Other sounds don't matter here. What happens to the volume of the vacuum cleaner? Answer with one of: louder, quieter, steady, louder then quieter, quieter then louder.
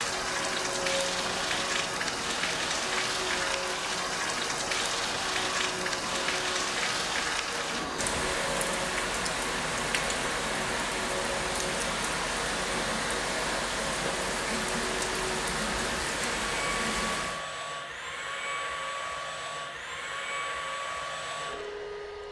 steady.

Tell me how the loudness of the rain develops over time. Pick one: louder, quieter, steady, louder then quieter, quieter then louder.
steady.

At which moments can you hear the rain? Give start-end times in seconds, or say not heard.
0.0-17.4.